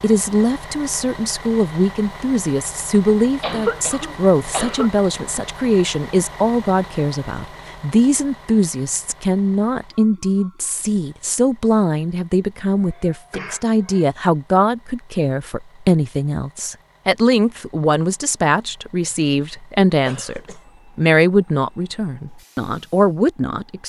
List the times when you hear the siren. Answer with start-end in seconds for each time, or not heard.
not heard.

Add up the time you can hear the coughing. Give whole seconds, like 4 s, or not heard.
4 s.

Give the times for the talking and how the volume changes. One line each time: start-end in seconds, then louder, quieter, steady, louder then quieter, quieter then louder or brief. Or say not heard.
0.0-23.8 steady.